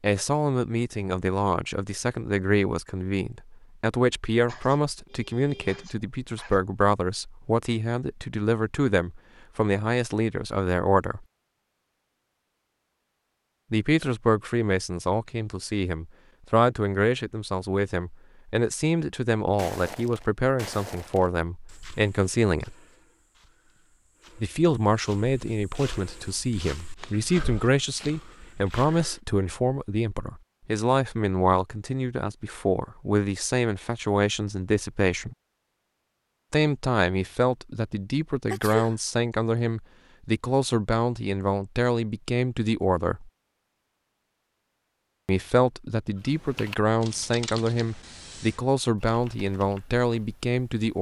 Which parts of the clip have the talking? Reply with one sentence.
The talking can be heard from 0.0 to 11.2 s, from 13.7 to 22.8 s, from 24.4 to 35.4 s, from 36.5 to 43.3 s and from 45.2 to 50.9 s.